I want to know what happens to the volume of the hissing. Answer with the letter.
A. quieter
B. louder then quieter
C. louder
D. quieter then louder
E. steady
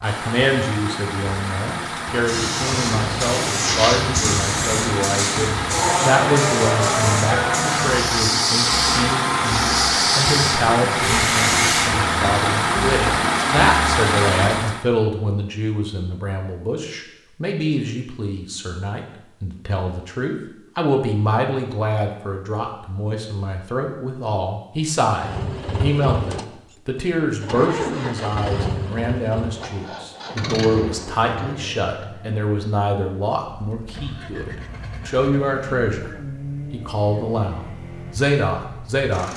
E.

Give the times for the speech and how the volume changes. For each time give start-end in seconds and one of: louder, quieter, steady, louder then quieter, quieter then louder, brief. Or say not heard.
0.0-36.1 steady
36.7-39.3 brief.